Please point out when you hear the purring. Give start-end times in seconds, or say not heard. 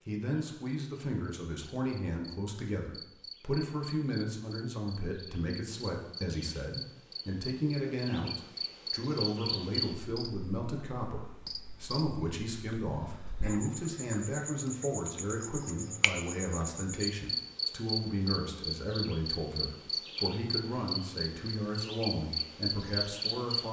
not heard.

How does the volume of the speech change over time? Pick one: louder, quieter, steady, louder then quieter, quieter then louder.
steady.